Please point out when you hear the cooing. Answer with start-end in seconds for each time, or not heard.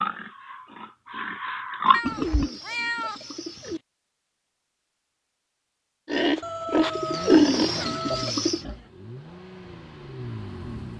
1.9-3.8, 7.0-8.6.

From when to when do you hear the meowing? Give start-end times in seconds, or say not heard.
1.9-3.8, 6.4-8.4.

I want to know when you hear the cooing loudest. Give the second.
7 s.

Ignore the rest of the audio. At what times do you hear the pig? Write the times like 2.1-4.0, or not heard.
0.0-2.5, 6.0-8.9.